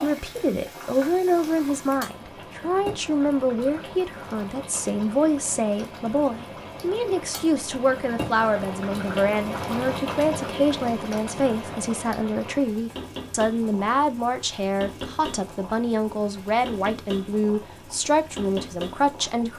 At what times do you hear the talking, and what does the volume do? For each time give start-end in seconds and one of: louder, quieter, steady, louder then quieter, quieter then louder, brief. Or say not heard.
0.0-19.5 steady.